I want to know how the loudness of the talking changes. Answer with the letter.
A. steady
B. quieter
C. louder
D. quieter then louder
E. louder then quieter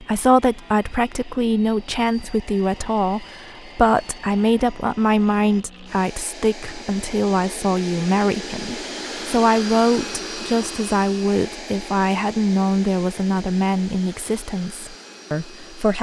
A.